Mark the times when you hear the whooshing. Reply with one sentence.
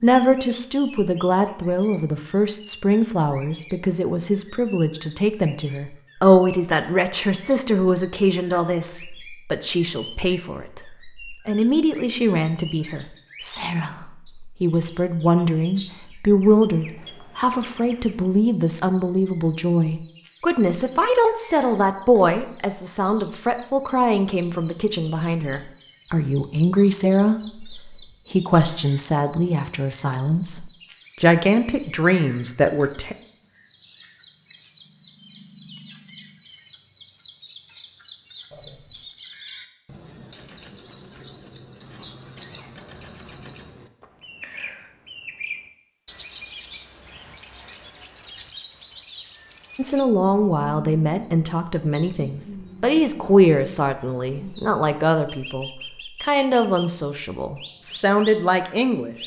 The whooshing can be heard from 38.5 to 39.0 s.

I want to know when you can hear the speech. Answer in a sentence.
The speech can be heard from 0.0 to 33.1 s and from 49.8 to 59.1 s.